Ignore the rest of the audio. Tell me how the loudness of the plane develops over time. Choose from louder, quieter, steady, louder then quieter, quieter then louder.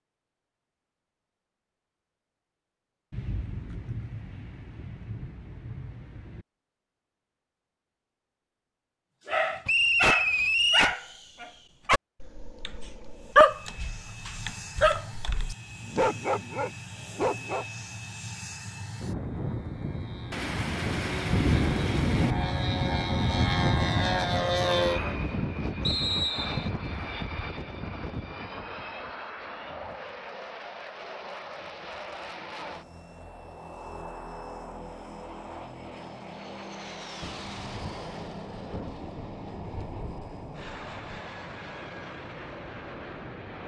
louder then quieter.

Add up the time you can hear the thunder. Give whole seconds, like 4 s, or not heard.
9 s.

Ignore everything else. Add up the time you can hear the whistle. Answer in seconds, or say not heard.
2 s.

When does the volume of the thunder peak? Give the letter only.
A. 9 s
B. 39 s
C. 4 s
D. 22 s
D.